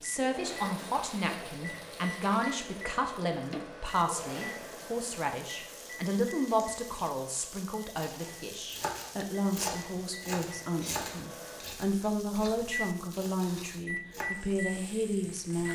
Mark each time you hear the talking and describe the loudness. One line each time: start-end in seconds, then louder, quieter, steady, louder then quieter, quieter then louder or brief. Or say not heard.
0.0-15.7 steady.